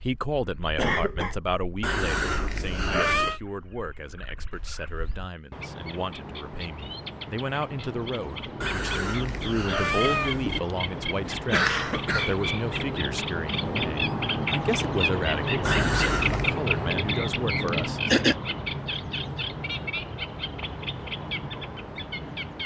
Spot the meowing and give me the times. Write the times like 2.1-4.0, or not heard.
1.8-3.4, 8.6-10.6, 15.7-16.6.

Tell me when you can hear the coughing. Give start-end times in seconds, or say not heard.
0.8-1.4, 11.2-12.3, 17.6-18.4.